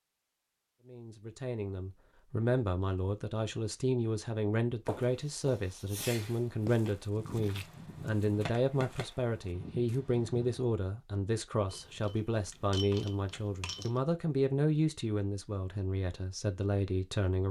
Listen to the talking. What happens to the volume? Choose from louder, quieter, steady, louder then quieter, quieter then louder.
steady.